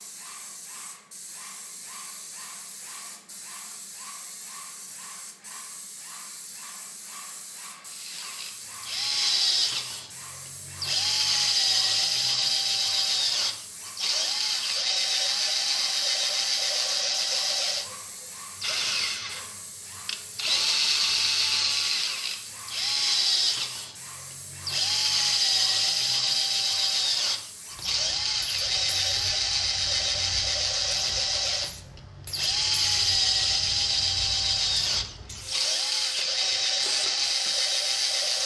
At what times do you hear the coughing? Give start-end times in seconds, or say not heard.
not heard.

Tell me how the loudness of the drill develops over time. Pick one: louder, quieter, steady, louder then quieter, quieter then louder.
steady.